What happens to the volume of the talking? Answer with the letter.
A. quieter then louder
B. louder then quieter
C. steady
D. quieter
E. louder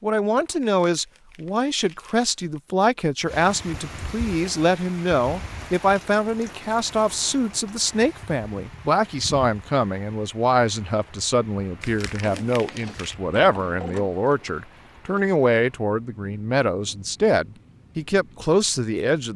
C.